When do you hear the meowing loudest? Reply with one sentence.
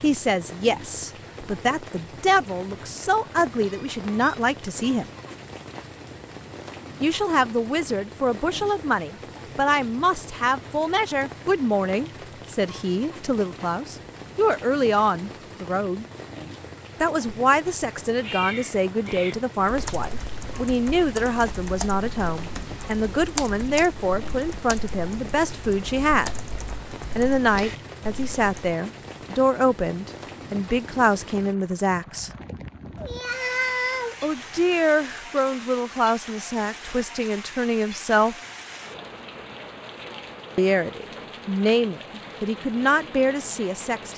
The loudest moment of the meowing is at 34 seconds.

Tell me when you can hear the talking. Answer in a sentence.
You can hear the talking from 0.0 to 5.1 s, from 7.0 to 16.1 s, from 17.0 to 26.4 s, from 27.1 to 32.3 s, from 34.2 to 38.4 s and from 40.5 to 44.1 s.